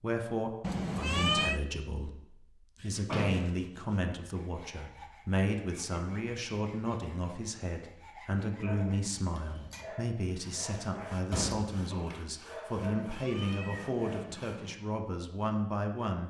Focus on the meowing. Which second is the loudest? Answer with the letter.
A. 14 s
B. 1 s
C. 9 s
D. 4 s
B.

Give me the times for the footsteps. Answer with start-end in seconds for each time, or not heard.
not heard.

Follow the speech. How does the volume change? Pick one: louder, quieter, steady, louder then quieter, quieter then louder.
steady.